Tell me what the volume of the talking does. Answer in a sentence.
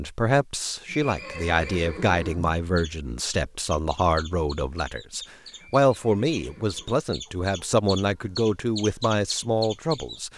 The volume of the talking stays about the same.